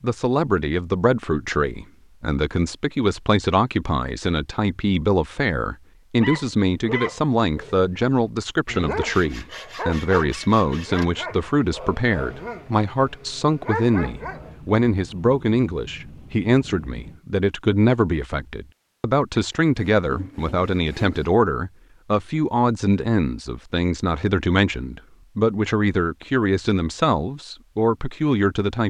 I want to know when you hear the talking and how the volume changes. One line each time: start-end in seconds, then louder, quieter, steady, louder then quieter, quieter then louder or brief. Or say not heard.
0.0-28.8 steady.